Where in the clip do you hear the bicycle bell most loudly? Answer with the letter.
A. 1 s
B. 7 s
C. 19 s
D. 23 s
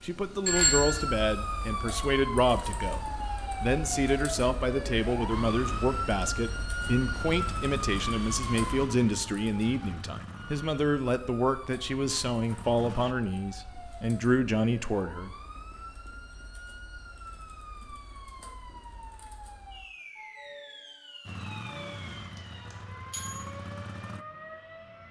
A.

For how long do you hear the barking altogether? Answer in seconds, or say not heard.
not heard.